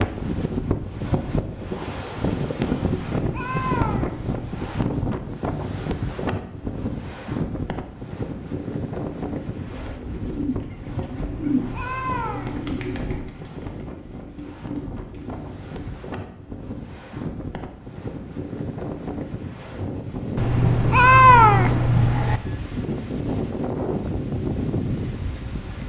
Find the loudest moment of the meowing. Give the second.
21 s.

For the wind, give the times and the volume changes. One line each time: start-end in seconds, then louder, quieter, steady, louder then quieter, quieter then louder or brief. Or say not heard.
0.0-25.8 quieter then louder.